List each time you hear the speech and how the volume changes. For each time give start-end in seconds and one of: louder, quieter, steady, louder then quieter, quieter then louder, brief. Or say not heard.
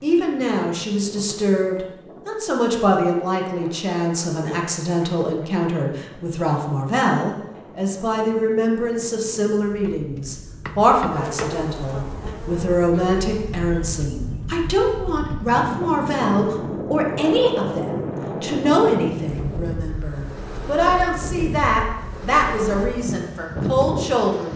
0.0-24.5 steady.